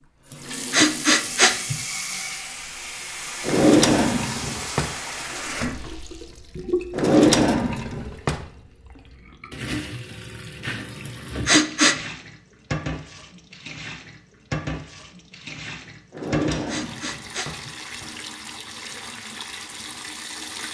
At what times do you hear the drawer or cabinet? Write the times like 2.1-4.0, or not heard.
3.4-4.9, 6.9-8.4, 16.1-17.6.